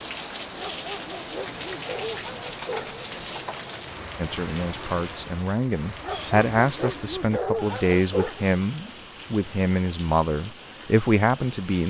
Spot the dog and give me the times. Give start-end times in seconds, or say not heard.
0.6-3.0, 6.0-8.4.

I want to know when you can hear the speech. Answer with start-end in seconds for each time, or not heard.
4.2-11.8.